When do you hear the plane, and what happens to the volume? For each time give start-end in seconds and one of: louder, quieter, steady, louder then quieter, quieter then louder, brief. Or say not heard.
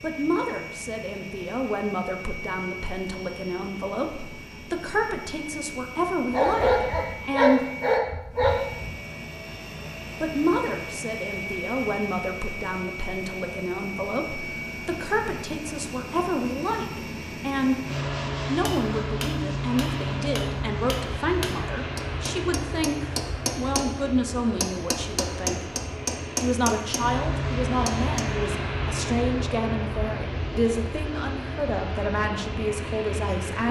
0.0-33.6 louder.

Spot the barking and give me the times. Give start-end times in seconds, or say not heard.
6.3-8.9.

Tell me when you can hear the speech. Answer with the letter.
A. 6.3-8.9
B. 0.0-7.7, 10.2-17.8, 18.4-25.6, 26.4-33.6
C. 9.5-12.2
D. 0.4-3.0
B.